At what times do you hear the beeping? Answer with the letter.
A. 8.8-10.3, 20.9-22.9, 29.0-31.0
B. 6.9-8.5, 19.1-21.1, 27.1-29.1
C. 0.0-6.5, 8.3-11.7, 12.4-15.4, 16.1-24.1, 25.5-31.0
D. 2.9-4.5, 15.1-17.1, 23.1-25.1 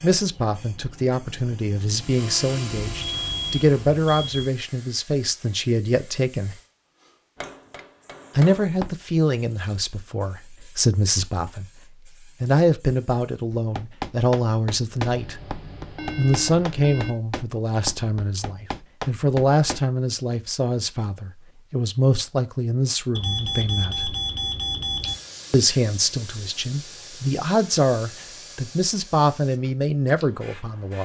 D.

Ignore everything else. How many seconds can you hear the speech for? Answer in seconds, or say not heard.
26 s.